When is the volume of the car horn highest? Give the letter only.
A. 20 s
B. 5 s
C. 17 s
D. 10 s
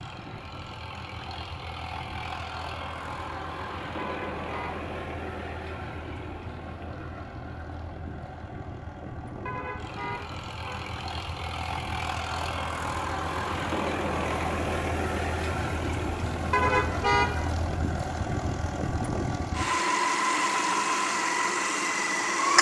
C.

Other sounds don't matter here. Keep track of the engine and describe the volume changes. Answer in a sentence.
The loudness of the engine goes up.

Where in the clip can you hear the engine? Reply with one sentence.
You can hear the engine from 0.0 to 22.5 s.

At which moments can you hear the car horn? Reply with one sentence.
You can hear the car horn from 4.0 to 4.9 s, from 9.4 to 10.9 s and from 16.5 to 17.6 s.